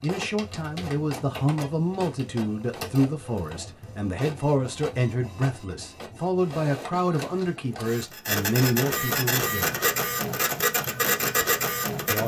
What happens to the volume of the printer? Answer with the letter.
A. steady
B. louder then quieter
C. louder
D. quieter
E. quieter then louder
C.